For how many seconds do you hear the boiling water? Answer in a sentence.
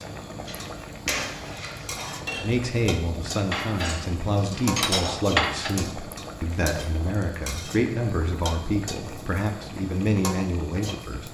The boiling water can be heard for 11 seconds in total.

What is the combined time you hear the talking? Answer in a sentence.
You can hear the talking for 9 seconds altogether.